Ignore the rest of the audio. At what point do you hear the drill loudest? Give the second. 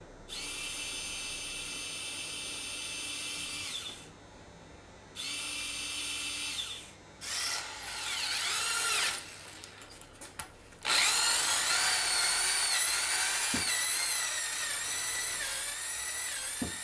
11 s.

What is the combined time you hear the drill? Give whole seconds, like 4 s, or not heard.
17 s.